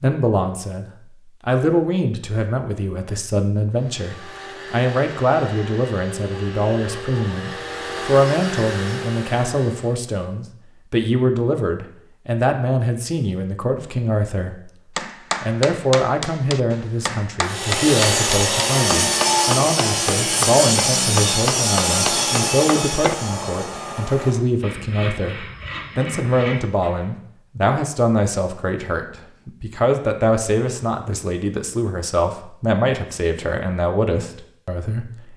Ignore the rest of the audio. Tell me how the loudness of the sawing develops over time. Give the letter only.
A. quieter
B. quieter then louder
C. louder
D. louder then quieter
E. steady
A.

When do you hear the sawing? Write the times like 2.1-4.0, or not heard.
17.4-27.1.